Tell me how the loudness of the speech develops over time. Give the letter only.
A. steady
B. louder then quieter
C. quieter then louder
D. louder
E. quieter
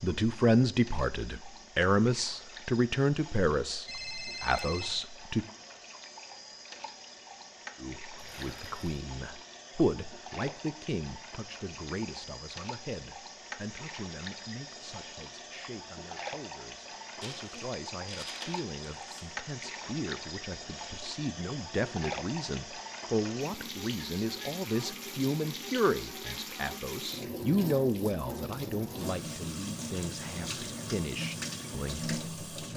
C.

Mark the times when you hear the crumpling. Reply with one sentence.
The crumpling can be heard from 8.2 to 9.0 s and from 17.2 to 19.2 s.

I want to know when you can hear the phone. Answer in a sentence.
The phone can be heard from 3.9 to 5.0 s.